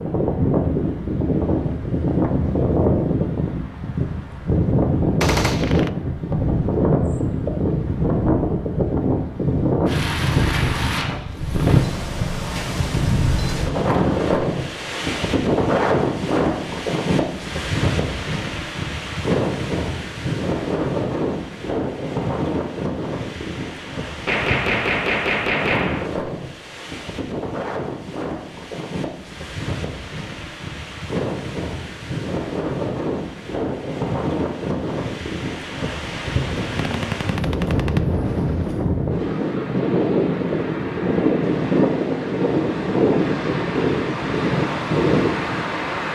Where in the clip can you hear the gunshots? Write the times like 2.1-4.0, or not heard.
5.2-5.9, 24.2-26.1, 36.8-38.8.